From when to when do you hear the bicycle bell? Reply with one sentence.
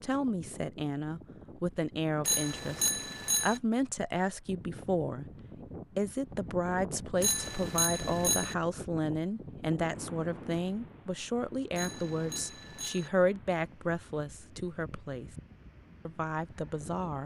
You can hear the bicycle bell from 2.2 to 3.6 s, from 7.2 to 8.6 s and from 11.8 to 13.1 s.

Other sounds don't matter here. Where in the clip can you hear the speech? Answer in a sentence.
The speech can be heard from 0.0 to 5.3 s, from 6.0 to 15.3 s and from 16.1 to 17.2 s.